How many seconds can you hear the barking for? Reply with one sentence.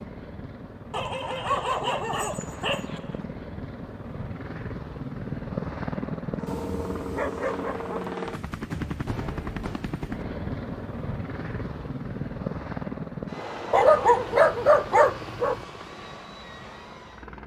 You can hear the barking for 6 seconds altogether.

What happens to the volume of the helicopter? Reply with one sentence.
The volume of the helicopter goes up, then down.